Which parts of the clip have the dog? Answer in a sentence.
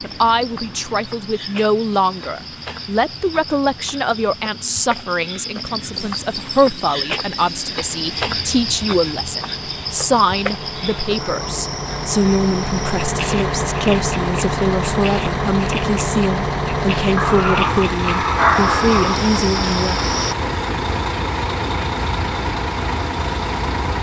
The dog can be heard from 17.1 to 19.2 s.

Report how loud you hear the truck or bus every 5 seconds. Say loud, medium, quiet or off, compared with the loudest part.
quiet, quiet, loud, loud, loud.